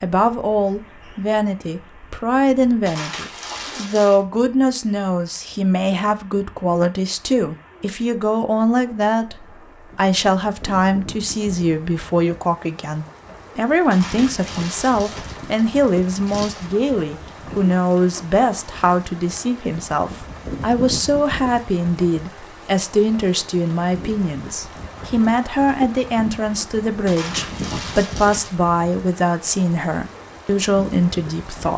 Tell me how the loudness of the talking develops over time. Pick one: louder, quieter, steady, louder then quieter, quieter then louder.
steady.